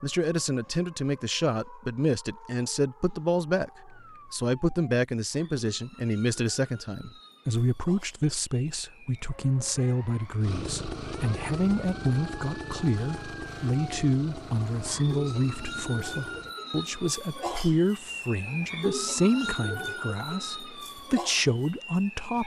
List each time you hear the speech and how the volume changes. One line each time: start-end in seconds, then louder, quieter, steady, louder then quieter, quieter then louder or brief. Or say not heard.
0.0-22.4 steady.